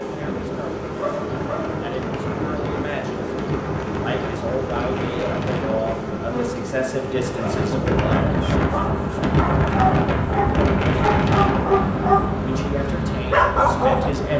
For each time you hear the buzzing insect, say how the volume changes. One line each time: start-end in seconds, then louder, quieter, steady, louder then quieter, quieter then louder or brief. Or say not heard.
0.0-14.3 steady.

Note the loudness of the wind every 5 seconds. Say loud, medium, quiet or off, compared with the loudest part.
medium, loud, loud.